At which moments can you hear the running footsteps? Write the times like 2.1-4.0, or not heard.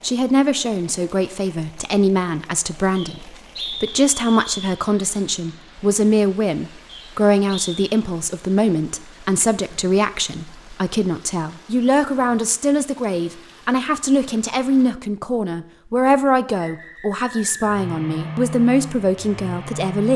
not heard.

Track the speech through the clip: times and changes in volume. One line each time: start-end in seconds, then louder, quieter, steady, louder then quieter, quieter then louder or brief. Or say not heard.
0.0-20.1 steady.